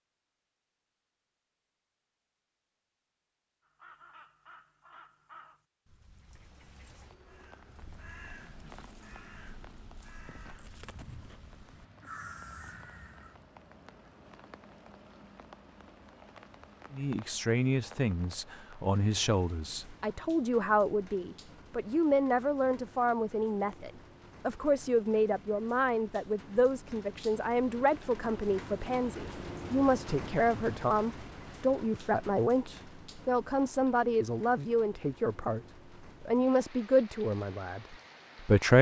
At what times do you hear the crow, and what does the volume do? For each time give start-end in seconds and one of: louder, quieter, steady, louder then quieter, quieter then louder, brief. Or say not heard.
3.6-13.3 quieter then louder.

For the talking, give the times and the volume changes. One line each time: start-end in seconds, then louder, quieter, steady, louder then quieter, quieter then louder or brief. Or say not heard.
16.9-35.6 steady
36.2-38.7 brief.